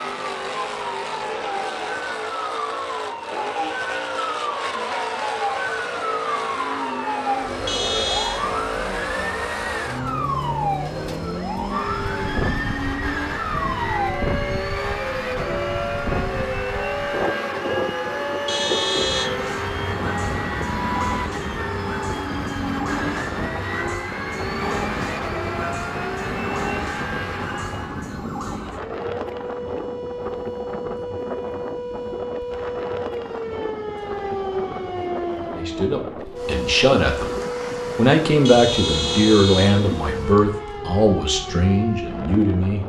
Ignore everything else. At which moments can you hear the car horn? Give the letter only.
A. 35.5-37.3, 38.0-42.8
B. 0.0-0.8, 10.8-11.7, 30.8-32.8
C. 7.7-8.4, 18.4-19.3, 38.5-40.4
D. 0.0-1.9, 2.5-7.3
C.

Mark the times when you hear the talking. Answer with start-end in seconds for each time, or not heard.
35.5-37.3, 38.0-42.8.